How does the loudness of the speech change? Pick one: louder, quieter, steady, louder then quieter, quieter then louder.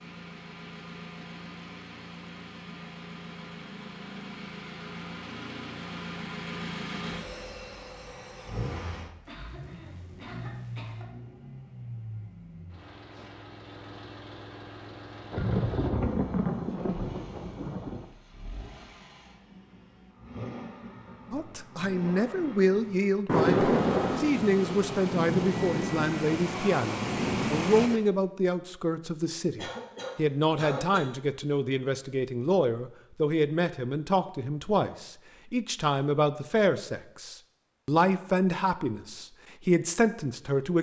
steady.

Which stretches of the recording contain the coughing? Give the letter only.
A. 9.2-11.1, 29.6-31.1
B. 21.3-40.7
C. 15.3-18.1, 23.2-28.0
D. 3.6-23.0
A.